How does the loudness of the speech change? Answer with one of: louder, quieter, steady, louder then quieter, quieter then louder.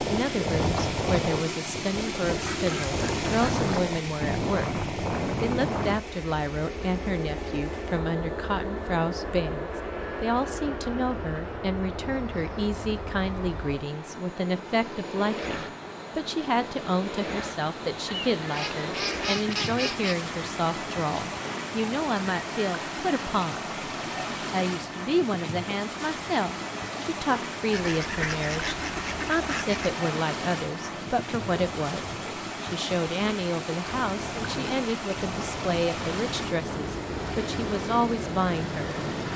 steady.